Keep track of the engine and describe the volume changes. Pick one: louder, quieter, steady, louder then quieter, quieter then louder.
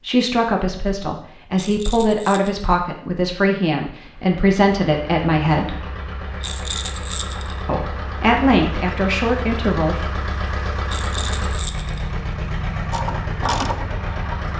louder.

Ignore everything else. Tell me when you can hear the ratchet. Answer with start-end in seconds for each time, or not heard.
12.9-14.5.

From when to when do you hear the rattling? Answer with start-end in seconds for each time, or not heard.
1.6-2.6, 6.4-7.6, 10.8-12.1.